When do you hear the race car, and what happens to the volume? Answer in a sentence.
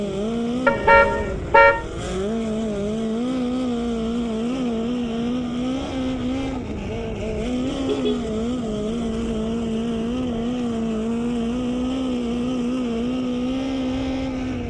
The race car can be heard from 0.0 to 14.6 s, at a steady volume.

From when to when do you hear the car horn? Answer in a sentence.
The car horn can be heard from 0.7 to 1.9 s and from 7.8 to 8.3 s.